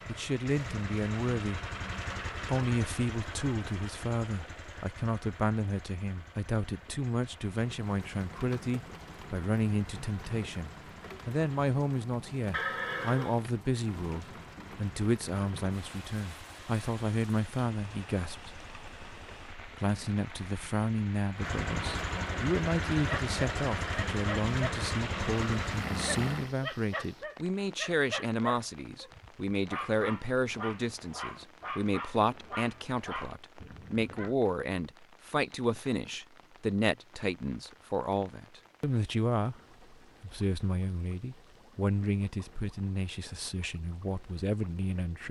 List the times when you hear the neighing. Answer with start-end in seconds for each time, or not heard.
12.5-13.4.